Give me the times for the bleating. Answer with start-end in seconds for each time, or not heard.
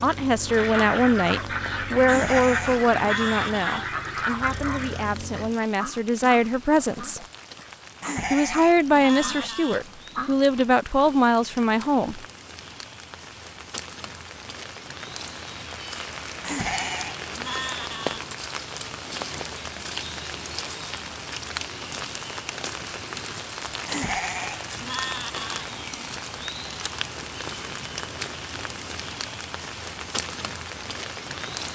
2.0-3.9, 8.0-9.8, 16.4-18.2, 23.9-25.5.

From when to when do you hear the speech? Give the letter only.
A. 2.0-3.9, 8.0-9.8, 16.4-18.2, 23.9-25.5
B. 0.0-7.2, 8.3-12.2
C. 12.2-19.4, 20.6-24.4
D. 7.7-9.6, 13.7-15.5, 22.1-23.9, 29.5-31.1
B.